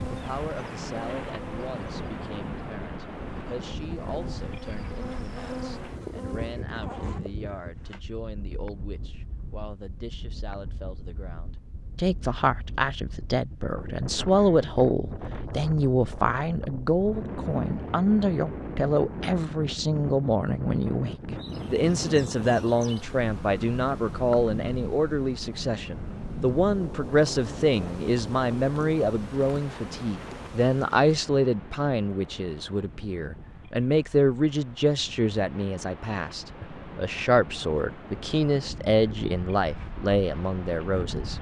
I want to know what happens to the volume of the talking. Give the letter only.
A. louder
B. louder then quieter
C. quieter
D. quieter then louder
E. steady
A.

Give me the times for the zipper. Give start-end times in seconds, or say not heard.
6.3-8.1.